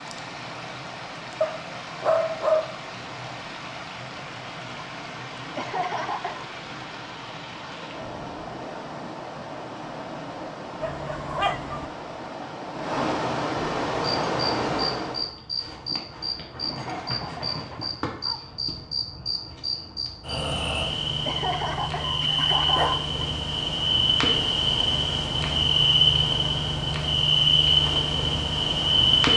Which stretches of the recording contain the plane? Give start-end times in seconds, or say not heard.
not heard.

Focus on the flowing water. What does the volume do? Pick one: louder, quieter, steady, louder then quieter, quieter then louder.
louder.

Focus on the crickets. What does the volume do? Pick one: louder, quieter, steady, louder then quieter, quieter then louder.
louder.